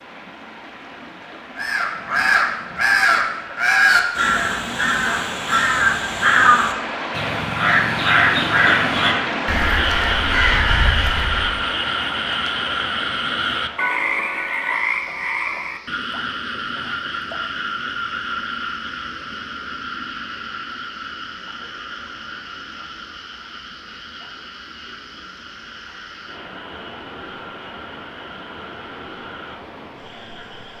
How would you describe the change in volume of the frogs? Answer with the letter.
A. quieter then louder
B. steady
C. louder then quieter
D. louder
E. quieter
E.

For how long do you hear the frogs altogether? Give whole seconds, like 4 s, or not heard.
21 s.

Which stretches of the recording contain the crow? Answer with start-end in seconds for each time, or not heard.
1.6-11.7.